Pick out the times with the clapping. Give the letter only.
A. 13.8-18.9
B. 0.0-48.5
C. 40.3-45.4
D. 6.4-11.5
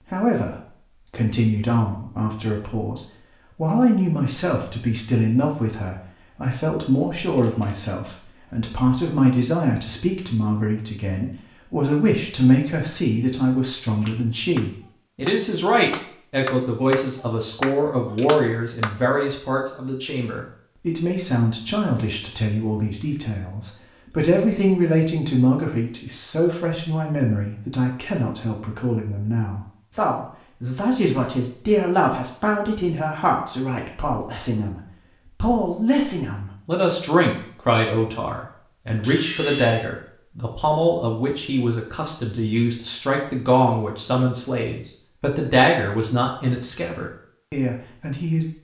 A.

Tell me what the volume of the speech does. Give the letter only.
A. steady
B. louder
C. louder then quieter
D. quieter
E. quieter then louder
A.